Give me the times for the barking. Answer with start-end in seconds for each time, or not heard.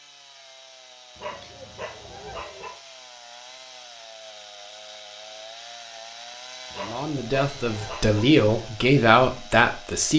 1.1-2.8, 6.7-8.2.